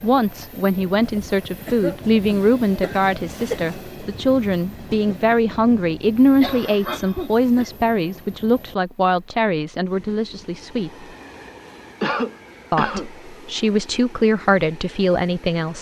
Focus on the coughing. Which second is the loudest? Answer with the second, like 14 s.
12 s.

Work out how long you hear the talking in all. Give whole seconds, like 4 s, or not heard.
14 s.